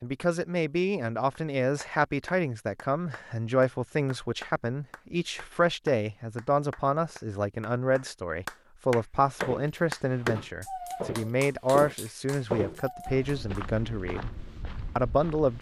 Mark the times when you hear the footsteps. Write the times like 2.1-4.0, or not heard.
9.2-15.5.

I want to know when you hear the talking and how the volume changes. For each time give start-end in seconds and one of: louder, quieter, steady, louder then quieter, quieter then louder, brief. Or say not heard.
0.0-14.3 steady
14.9-15.5 brief.